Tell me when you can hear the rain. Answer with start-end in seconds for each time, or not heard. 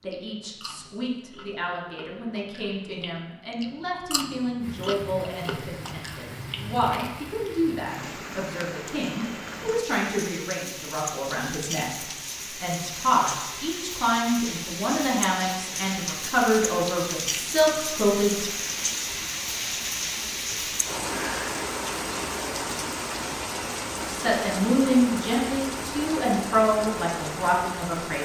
4.6-28.2.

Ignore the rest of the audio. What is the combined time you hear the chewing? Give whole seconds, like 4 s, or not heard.
8 s.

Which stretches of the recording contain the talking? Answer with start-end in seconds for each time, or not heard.
0.0-18.4, 24.1-28.2.